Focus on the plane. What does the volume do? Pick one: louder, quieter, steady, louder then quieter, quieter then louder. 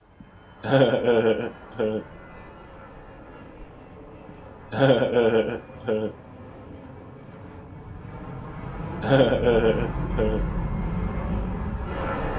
louder.